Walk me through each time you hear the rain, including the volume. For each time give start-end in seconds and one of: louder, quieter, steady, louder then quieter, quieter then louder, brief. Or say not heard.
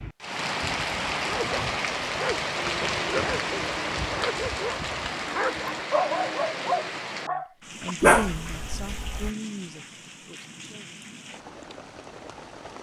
0.0-12.7 quieter.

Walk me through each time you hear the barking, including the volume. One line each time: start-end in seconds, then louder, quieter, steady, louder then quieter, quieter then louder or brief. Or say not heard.
0.6-9.3 louder.